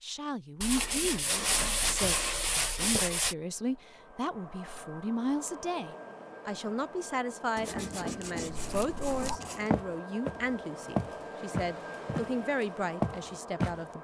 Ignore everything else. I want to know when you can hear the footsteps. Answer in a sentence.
The footsteps can be heard from 8.6 to 12.3 s and from 13.0 to 13.8 s.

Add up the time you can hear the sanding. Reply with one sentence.
The sanding can be heard for 5 seconds in total.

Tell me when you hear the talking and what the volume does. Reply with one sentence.
You can hear the talking from 0.0 to 13.9 s, at a steady volume.